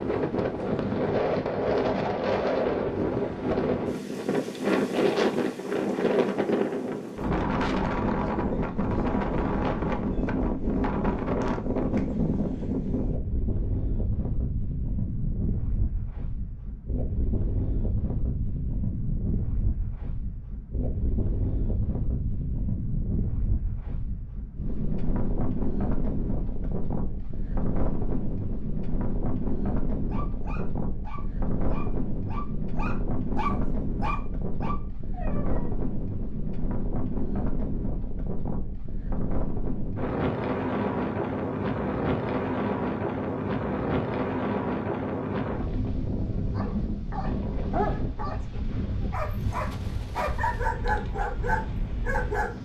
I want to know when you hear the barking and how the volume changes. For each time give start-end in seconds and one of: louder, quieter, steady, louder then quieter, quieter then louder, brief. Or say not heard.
30.1-35.7 louder then quieter
46.5-52.6 quieter then louder.